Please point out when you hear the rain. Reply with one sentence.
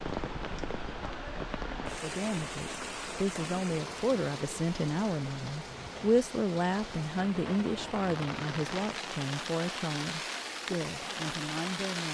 You can hear the rain from 0.0 to 12.0 s.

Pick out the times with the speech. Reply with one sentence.
The speech can be heard from 1.7 to 12.0 s.